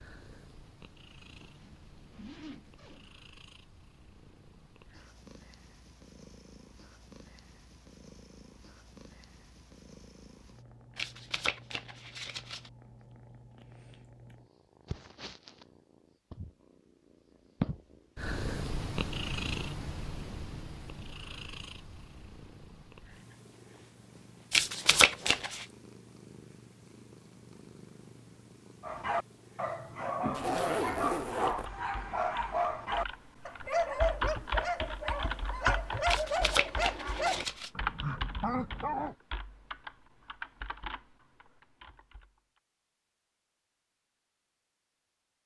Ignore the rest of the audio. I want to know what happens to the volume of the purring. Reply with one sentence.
The loudness of the purring goes up, then down.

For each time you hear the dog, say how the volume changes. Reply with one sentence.
The dog can be heard from 28.8 to 39.1 s, at a steady volume.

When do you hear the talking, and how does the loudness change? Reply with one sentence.
You can't hear the talking here.